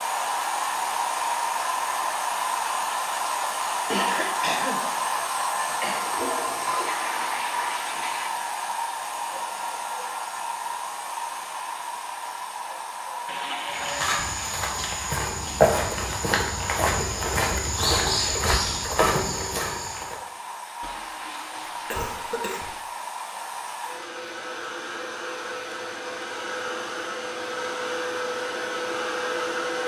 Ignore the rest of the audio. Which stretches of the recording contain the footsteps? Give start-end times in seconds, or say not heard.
13.7-20.1.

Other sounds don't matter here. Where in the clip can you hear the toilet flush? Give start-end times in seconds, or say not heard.
5.7-8.3, 13.2-14.2, 20.8-22.9.